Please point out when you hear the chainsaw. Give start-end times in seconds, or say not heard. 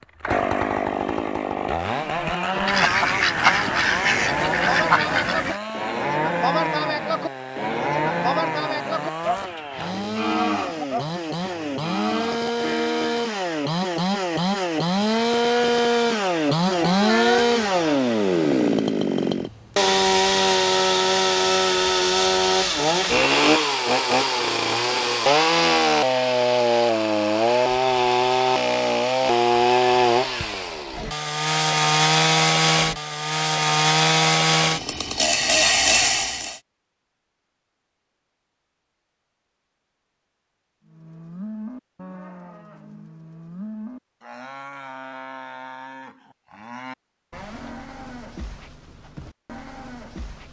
0.0-36.6.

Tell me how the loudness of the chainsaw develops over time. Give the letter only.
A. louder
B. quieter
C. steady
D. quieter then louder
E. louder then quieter
A.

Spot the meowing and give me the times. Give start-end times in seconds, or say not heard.
16.7-18.1.